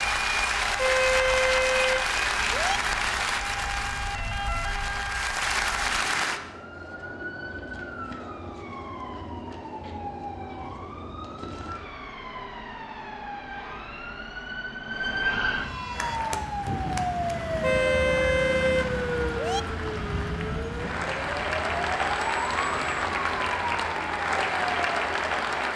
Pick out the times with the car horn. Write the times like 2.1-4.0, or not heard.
0.8-2.8, 17.6-19.6.